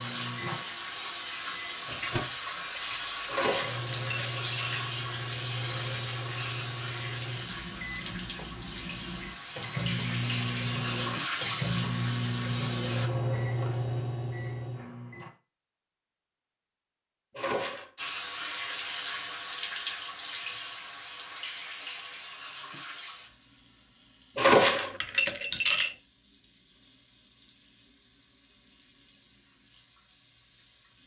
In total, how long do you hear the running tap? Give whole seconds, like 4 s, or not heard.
26 s.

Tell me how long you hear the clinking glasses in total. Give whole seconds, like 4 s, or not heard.
4 s.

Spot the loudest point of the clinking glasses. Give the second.
25 s.